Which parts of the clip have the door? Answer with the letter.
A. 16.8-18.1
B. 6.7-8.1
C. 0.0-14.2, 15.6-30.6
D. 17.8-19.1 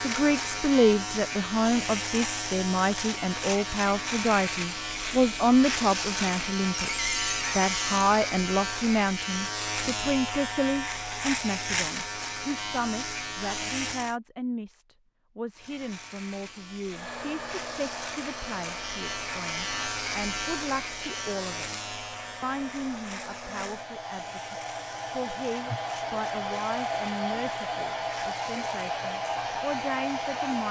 B.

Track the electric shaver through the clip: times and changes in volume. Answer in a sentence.
The electric shaver can be heard from 0.0 to 14.2 s, at a steady volume; and from 15.6 to 30.6 s, getting louder then quieter.